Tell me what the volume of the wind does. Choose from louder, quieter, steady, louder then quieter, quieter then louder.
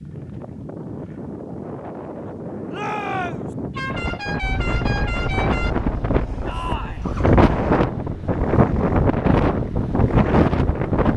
louder.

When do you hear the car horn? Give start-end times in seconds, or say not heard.
3.7-5.8.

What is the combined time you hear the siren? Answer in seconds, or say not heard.
not heard.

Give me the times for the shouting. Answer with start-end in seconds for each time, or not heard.
2.7-3.5, 6.5-7.0.